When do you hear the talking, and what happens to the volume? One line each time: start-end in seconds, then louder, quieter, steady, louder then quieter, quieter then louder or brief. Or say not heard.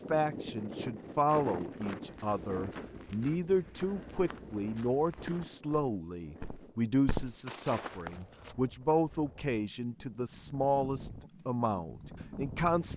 0.1-12.9 steady.